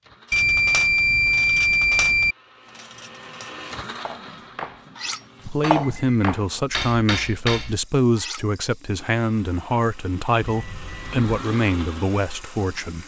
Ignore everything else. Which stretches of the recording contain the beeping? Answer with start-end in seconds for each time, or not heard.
0.3-2.4, 5.3-6.2, 10.4-11.3.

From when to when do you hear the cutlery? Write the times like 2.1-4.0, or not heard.
0.3-8.4.